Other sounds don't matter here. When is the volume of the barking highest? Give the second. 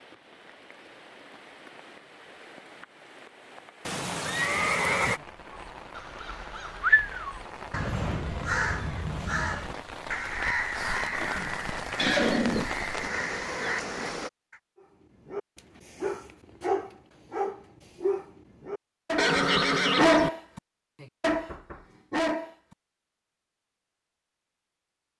20 s.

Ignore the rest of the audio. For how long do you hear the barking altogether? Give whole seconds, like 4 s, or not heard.
7 s.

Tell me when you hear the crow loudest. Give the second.
7 s.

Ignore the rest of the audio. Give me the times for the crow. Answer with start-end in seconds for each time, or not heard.
5.5-14.6.